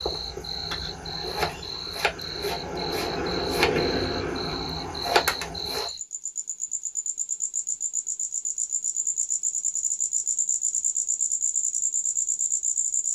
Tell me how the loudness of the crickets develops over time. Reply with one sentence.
The volume of the crickets goes up.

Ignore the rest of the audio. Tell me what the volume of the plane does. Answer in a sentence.
The loudness of the plane goes up, then down.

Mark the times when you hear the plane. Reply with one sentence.
You can hear the plane from 0.0 to 5.8 s.